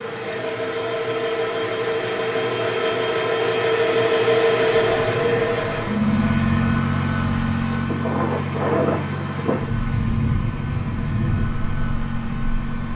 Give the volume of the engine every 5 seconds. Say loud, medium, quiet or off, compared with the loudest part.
loud, loud, medium.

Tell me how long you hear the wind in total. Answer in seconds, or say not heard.
8 s.